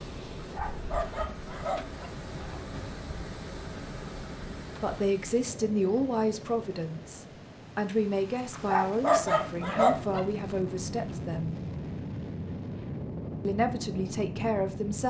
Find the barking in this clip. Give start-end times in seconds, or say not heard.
0.4-2.1, 8.5-10.2.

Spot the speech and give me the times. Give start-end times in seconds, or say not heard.
4.8-11.6, 13.4-15.0.